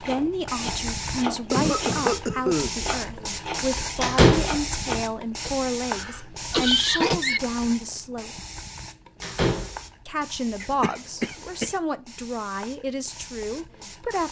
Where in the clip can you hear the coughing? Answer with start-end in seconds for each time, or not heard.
1.5-2.7, 5.5-7.4, 10.6-11.7.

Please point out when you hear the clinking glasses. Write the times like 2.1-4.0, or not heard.
not heard.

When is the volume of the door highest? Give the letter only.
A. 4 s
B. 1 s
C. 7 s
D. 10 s
A.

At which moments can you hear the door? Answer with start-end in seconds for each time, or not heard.
4.0-4.6, 9.2-9.8.